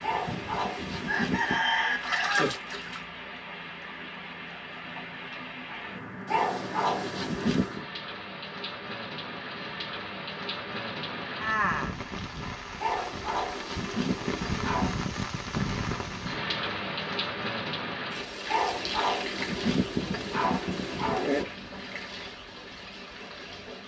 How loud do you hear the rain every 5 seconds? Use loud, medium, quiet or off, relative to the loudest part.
medium, medium, loud, loud, medium.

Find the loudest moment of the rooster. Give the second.
2 s.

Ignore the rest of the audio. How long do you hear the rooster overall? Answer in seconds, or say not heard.
2 s.